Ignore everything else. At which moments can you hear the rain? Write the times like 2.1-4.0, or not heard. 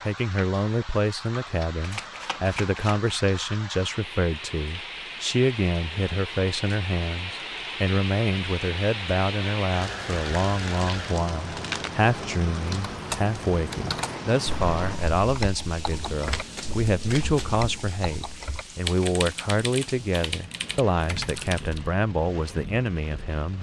0.0-23.5.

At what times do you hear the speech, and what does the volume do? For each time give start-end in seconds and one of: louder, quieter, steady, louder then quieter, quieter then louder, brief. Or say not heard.
0.0-23.5 steady.